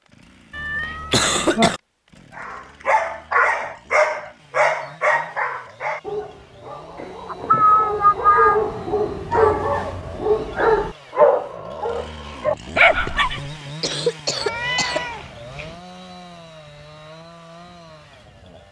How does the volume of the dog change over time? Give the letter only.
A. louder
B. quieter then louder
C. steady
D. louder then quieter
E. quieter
B.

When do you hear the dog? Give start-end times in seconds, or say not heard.
2.4-13.5.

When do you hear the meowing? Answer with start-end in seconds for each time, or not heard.
0.6-1.7, 7.0-8.6, 14.4-15.8.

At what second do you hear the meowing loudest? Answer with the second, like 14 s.
8 s.